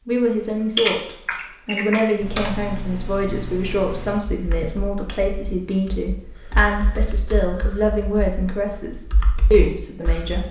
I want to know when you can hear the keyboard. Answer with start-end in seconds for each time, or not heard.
0.4-10.4.